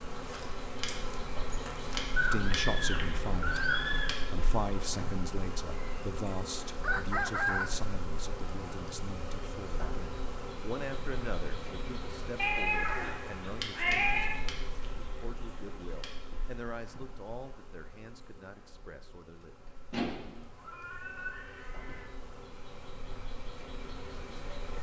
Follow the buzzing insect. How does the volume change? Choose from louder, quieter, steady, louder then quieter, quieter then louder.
quieter.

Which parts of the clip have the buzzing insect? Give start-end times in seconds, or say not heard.
0.0-24.7.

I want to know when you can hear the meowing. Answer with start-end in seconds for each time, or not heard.
2.1-4.2, 12.3-14.3, 19.9-22.1.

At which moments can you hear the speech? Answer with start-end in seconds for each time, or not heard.
2.2-3.6, 4.3-19.6.